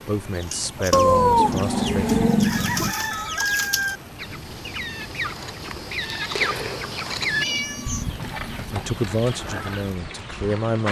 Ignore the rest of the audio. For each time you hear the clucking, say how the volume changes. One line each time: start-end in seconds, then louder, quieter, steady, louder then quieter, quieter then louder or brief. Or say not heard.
0.3-10.8 louder then quieter.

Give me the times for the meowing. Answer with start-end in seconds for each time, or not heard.
0.9-3.0, 7.4-8.7.